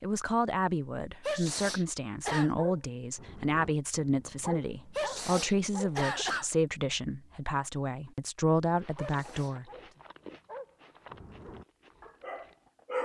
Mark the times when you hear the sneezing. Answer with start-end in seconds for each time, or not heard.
1.2-2.5, 5.0-6.5, 8.9-9.6.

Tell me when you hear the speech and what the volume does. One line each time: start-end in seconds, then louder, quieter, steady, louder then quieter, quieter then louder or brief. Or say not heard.
0.0-9.7 steady.